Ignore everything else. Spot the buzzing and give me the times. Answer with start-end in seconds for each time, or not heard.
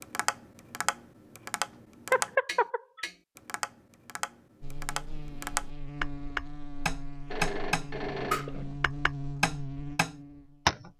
4.6-10.9.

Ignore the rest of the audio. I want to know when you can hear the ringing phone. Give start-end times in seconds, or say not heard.
2.1-3.0, 7.2-8.8.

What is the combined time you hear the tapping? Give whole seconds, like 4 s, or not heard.
11 s.